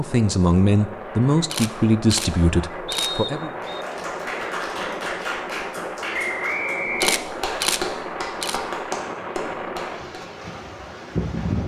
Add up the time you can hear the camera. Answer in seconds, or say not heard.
4 s.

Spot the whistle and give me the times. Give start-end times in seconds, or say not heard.
2.9-3.9, 6.1-7.7.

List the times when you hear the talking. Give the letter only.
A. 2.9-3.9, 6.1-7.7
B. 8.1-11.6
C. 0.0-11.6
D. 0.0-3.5
D.